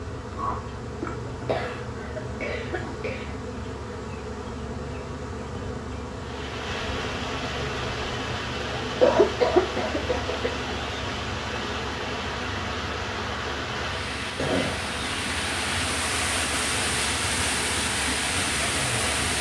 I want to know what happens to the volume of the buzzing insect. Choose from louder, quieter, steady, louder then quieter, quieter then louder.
steady.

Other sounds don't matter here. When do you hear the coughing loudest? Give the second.
9 s.